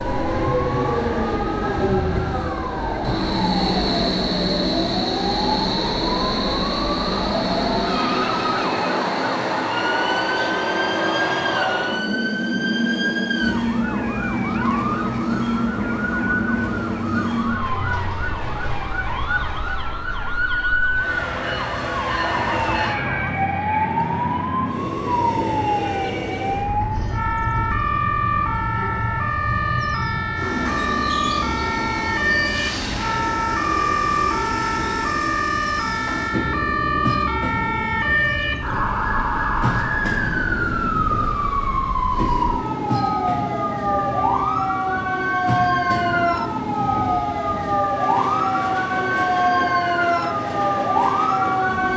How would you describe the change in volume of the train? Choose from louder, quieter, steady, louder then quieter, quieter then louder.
quieter.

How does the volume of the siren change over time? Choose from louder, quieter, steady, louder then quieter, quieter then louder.
louder.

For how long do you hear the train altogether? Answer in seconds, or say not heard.
52 s.